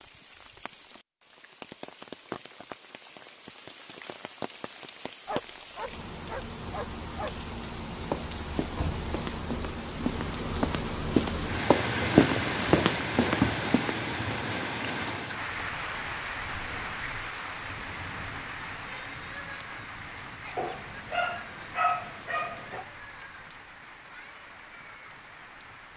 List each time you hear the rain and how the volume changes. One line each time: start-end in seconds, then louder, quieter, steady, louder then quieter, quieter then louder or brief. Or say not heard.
0.0-25.9 louder then quieter.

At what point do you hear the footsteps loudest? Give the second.
12 s.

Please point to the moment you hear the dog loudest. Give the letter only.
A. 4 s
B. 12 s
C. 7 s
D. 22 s
D.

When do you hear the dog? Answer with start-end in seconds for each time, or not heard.
5.2-7.3, 20.6-22.9.